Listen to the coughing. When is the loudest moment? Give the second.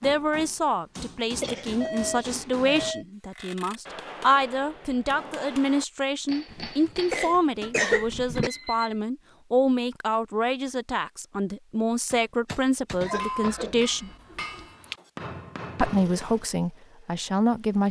8 s.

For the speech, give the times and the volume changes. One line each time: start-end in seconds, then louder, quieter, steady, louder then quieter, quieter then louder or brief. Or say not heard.
0.0-14.1 steady
15.8-17.8 brief.